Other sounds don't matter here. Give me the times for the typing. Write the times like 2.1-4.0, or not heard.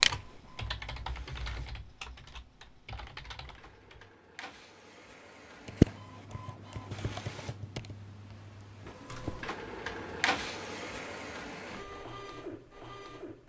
0.0-4.2, 5.7-9.6.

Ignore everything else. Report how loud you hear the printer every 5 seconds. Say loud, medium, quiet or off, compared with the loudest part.
quiet, medium, loud.